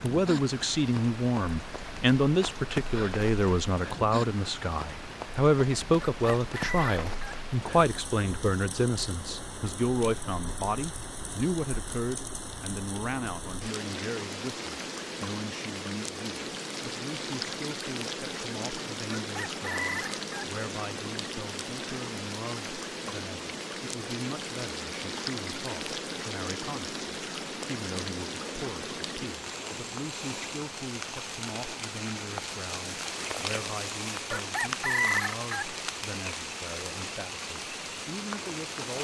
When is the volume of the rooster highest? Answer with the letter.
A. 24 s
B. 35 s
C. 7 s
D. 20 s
B.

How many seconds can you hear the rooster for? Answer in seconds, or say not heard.
4 s.